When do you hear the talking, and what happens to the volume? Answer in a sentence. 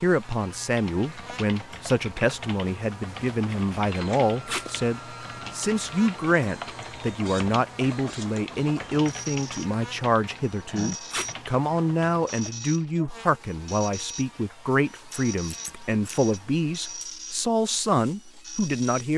The talking can be heard from 0.0 to 19.1 s, at a steady volume.